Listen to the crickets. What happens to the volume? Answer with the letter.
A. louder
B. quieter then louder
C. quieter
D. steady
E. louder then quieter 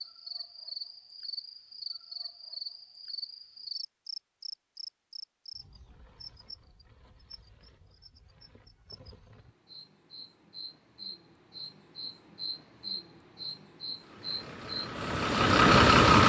B.